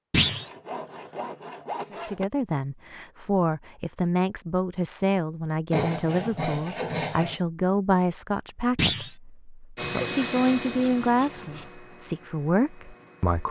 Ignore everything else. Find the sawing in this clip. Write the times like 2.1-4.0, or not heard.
0.2-2.2, 5.7-7.4, 10.0-11.8.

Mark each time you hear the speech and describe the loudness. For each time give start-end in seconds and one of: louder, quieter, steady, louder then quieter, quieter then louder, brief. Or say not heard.
1.9-13.4 steady.